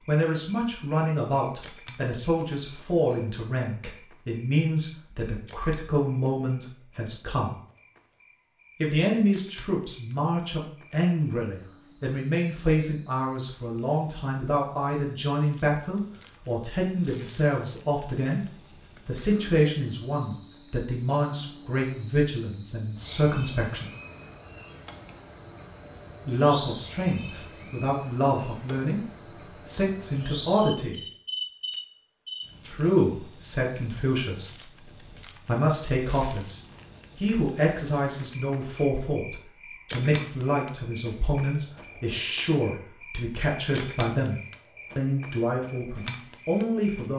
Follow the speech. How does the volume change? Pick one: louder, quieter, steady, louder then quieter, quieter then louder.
steady.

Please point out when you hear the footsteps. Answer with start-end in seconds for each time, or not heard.
not heard.